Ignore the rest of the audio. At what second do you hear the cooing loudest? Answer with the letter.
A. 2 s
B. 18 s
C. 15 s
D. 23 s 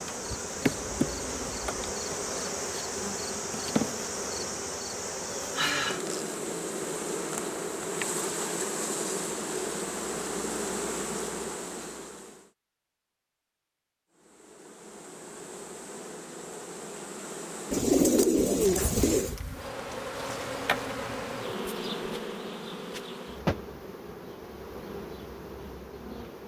B.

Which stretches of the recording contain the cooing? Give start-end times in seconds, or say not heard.
0.6-1.7, 17.7-19.4.